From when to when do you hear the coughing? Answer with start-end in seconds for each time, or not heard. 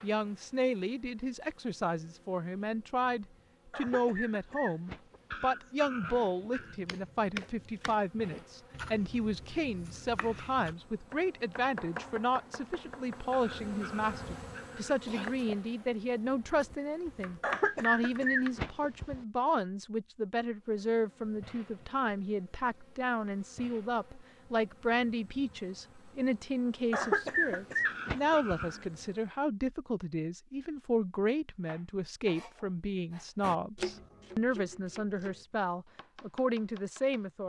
3.7-5.5, 17.4-19.2, 26.9-28.7.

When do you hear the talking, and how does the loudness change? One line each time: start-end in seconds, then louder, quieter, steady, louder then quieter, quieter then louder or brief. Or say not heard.
0.0-37.4 steady.